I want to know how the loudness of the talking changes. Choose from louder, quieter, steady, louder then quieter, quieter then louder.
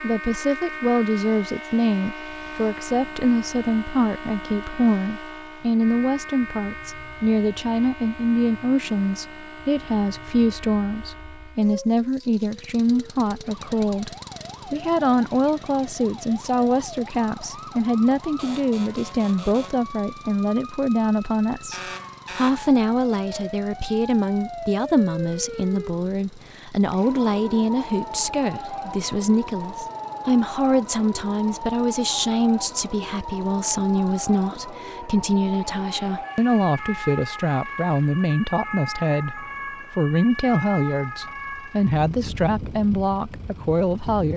steady.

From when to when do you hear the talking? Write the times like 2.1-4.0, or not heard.
0.0-44.3.